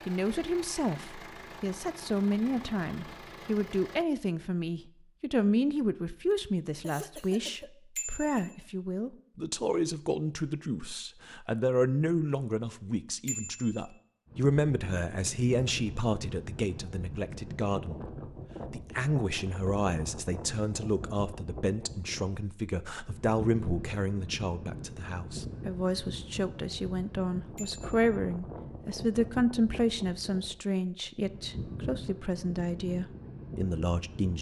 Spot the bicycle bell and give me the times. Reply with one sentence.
The bicycle bell can be heard from 8.0 to 8.6 s, from 13.2 to 13.8 s and from 27.6 to 28.0 s.